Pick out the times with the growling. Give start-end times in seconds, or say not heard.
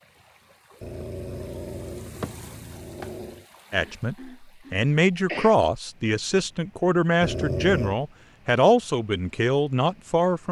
0.8-3.5, 7.2-8.0.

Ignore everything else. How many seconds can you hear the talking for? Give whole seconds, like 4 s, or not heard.
7 s.